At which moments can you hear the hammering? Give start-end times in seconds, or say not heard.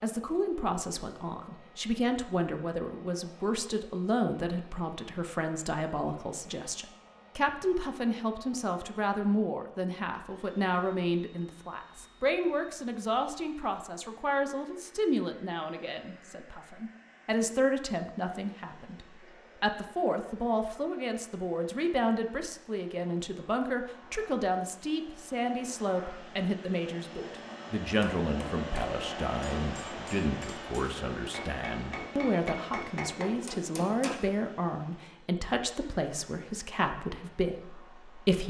28.0-34.1.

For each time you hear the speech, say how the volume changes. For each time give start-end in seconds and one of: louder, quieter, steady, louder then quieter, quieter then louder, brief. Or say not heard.
0.0-38.4 steady.